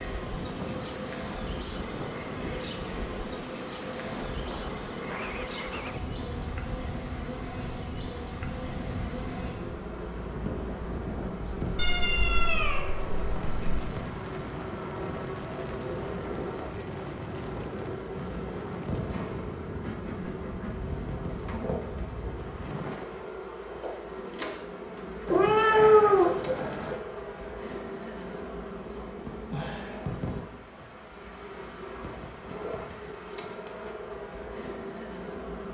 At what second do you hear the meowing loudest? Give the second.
26 s.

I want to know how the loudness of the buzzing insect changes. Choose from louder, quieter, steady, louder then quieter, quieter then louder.
steady.